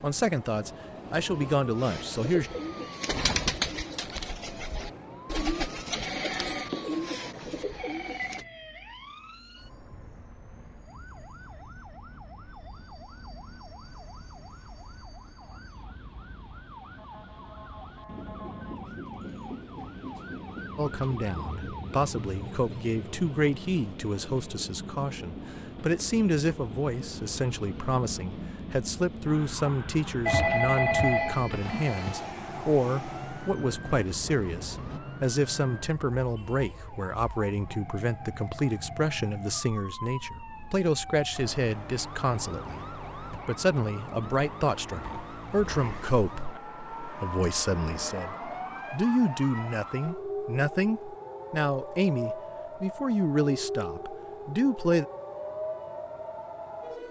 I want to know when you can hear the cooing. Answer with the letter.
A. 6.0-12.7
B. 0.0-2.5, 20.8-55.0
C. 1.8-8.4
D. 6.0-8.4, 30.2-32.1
C.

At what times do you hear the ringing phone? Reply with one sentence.
You can hear the ringing phone from 6.0 to 8.4 s and from 30.2 to 32.1 s.